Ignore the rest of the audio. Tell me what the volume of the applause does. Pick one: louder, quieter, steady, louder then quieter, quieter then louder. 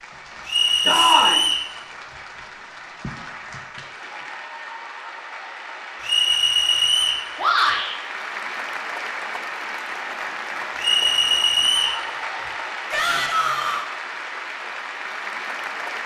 louder.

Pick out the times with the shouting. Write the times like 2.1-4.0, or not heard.
0.8-1.4, 7.3-8.0, 12.9-13.8.